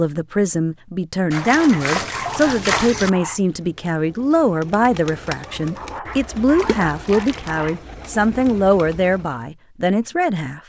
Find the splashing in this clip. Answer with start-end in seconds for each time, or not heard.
1.3-3.1, 6.5-7.6.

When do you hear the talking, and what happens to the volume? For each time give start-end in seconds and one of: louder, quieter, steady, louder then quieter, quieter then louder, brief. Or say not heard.
0.0-10.6 steady.